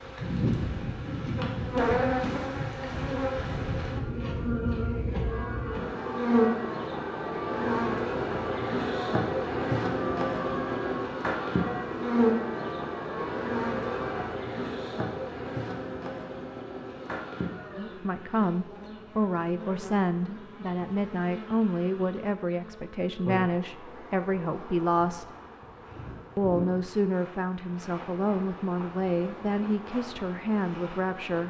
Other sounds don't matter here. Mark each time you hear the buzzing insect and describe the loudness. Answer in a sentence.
The buzzing insect can be heard from 0.0 to 31.4 s, getting quieter.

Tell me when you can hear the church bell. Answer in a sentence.
The church bell can be heard from 5.2 to 14.3 s.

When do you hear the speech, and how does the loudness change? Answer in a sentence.
You can hear the speech from 17.8 to 25.2 s, at a steady volume; and from 26.4 to 31.4 s, at a steady volume.